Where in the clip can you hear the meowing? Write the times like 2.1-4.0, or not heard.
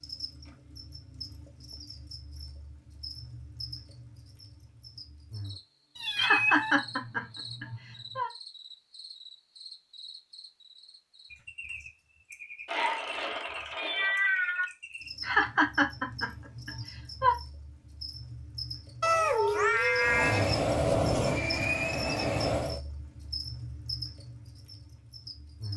6.0-6.8, 12.7-14.7, 19.0-20.5.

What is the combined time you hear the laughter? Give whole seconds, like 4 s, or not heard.
4 s.